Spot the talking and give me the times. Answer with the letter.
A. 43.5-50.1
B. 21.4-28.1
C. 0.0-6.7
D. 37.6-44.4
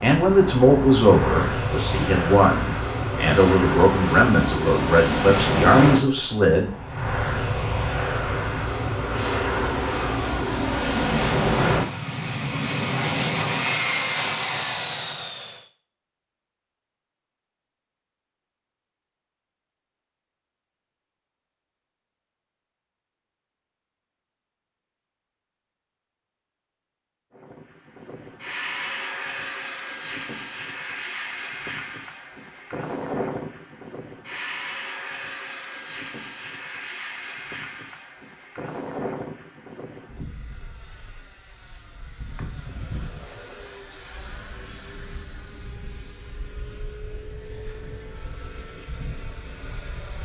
C.